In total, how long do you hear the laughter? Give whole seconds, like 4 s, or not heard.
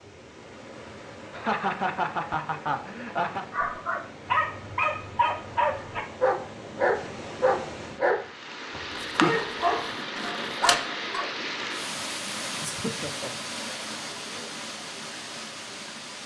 3 s.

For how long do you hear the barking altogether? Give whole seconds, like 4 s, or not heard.
8 s.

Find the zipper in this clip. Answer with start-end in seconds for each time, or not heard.
8.9-10.8.